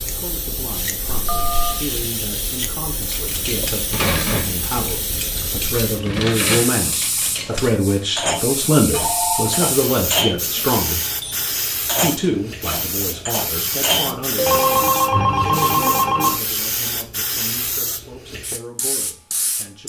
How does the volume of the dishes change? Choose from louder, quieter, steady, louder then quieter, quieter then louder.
steady.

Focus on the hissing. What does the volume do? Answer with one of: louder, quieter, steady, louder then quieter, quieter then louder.
steady.